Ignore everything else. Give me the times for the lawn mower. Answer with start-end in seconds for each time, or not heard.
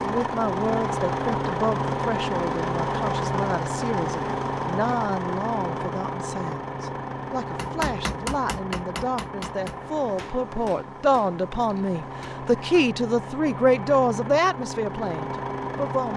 0.0-16.1.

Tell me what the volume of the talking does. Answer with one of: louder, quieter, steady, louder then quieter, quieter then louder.
louder.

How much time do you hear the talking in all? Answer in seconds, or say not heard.
16 s.